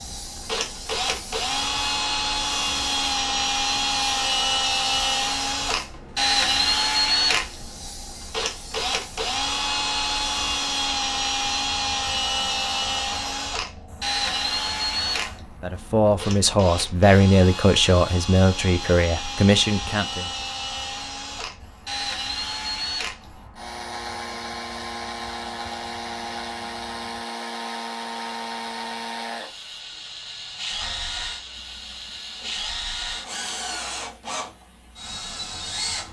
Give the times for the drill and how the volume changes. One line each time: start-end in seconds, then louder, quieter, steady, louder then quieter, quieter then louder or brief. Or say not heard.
0.1-36.0 quieter.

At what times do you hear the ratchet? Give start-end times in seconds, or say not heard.
not heard.